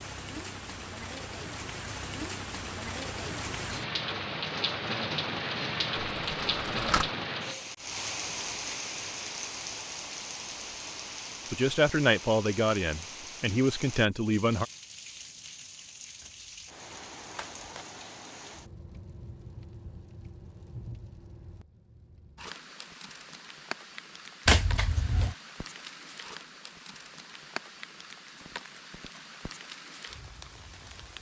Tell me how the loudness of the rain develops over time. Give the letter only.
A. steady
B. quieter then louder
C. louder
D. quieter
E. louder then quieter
D.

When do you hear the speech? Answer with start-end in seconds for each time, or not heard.
11.5-14.7.